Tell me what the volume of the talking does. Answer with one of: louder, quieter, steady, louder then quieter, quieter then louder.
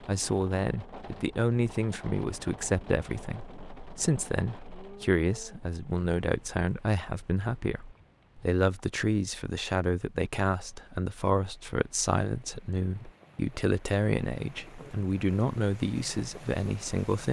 steady.